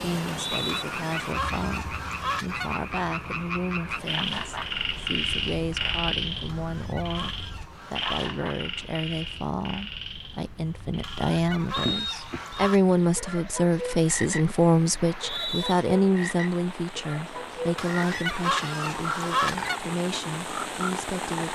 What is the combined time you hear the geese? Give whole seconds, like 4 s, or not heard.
8 s.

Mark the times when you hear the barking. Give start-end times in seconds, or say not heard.
not heard.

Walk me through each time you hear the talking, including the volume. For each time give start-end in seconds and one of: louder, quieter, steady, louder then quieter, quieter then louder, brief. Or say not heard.
0.0-21.5 louder then quieter.